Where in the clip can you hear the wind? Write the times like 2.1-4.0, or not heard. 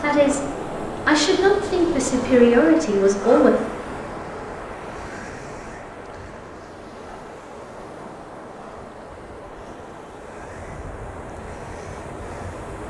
0.0-12.8.